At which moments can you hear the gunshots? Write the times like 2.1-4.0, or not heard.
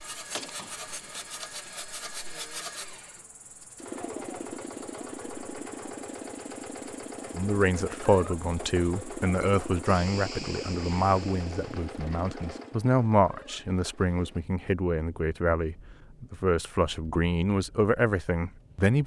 0.3-1.6.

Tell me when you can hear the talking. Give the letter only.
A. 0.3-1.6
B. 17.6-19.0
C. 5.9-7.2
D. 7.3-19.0
D.